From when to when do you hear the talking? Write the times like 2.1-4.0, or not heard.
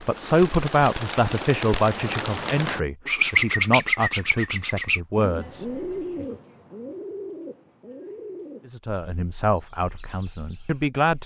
0.0-6.2, 8.7-11.2.